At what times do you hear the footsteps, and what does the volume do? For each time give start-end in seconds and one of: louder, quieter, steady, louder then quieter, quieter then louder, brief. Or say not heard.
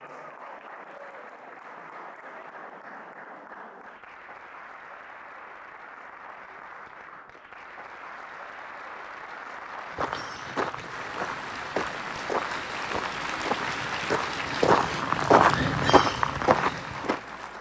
9.9-17.2 louder.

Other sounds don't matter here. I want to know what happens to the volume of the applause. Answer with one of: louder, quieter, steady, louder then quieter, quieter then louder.
louder.